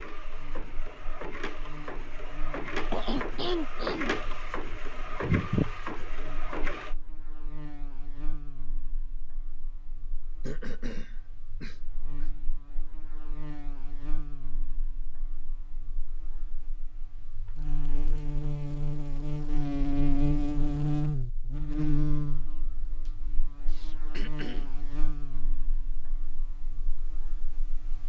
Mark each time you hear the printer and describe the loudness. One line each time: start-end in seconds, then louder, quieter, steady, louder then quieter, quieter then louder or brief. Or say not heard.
0.0-7.0 louder.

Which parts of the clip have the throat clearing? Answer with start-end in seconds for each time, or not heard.
2.9-4.2, 10.4-12.2, 23.6-24.7.